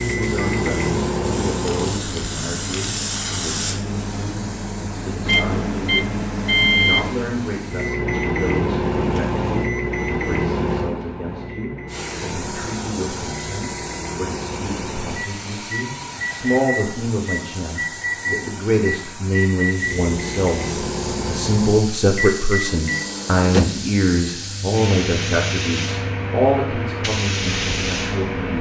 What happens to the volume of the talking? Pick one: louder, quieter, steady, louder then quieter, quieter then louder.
louder.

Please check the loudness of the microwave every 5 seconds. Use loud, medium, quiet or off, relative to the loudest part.
medium, loud, medium, medium, medium, medium.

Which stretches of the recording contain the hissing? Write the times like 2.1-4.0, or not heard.
0.0-8.0, 11.8-28.5.